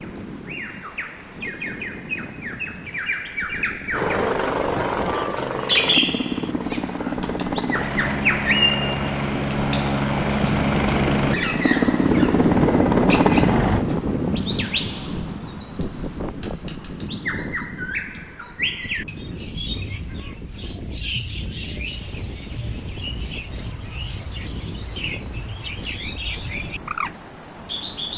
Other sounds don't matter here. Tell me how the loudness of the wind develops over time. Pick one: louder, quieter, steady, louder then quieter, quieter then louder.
louder then quieter.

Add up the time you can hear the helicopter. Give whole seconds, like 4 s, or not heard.
10 s.